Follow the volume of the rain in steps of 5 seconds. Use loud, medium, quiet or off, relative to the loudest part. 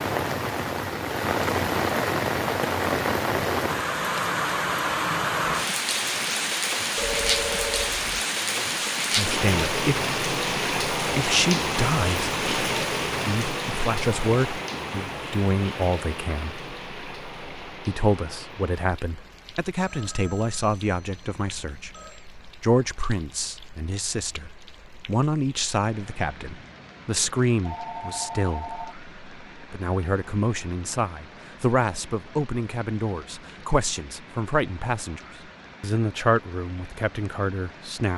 loud, loud, loud, quiet, quiet, quiet, quiet, quiet.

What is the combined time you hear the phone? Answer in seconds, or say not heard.
5 s.